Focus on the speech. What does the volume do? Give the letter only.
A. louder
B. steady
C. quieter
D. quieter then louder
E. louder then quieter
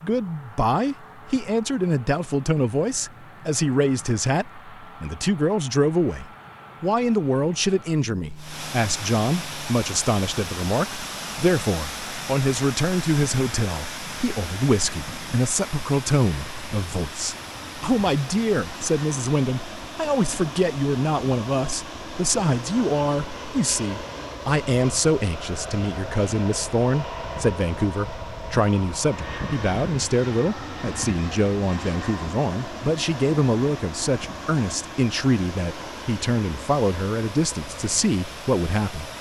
B.